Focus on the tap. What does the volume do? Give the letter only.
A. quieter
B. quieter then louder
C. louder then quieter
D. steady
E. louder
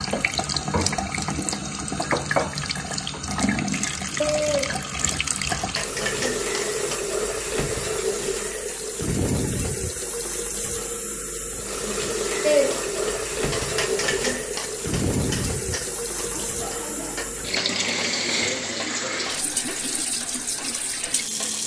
D.